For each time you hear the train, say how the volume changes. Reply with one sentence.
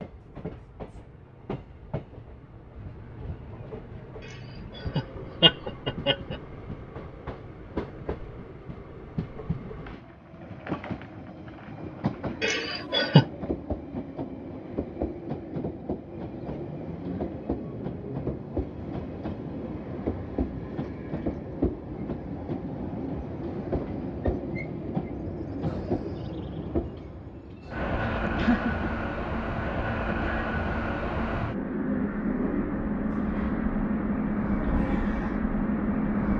The train can be heard from 0.0 to 36.3 s, getting louder.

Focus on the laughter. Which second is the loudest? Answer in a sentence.
The volume of the laughter peaks at 13 seconds.